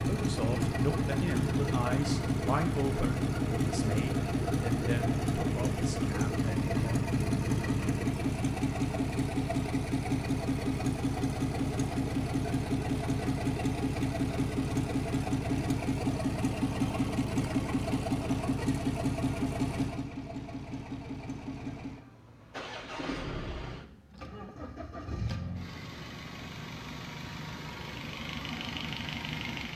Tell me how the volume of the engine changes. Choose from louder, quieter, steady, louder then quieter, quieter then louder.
quieter.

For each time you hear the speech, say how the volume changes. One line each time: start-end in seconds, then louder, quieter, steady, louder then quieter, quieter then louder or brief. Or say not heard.
0.0-7.0 quieter.